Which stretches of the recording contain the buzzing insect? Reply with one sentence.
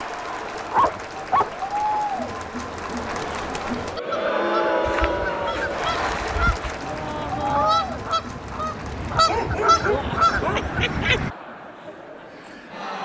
You can't hear the buzzing insect here.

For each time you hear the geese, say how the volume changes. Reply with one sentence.
The geese can be heard from 3.8 to 11.3 s, getting louder.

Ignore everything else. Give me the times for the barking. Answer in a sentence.
You can hear the barking from 0.3 to 2.0 s, from 4.8 to 6.7 s and from 9.2 to 10.8 s.